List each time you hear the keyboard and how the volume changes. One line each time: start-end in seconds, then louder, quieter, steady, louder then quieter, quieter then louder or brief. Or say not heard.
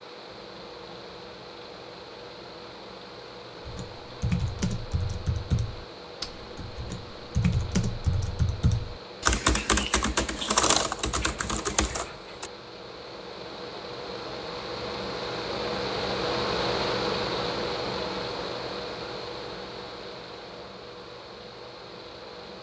3.6-12.5 quieter then louder.